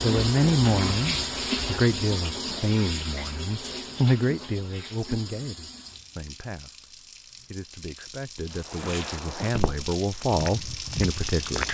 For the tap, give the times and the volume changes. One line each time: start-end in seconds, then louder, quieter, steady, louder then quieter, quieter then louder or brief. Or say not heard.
0.0-11.6 quieter then louder.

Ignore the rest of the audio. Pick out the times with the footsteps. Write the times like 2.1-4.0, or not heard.
8.5-11.6.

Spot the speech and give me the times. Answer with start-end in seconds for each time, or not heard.
0.0-11.6.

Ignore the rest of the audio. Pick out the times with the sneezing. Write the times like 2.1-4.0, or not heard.
not heard.